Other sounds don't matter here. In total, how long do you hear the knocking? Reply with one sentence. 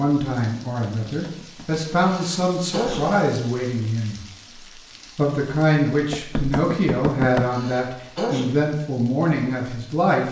The knocking can be heard for 3 seconds in total.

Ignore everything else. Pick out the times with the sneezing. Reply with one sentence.
The sneezing can be heard from 2.0 to 3.0 s and from 7.5 to 8.4 s.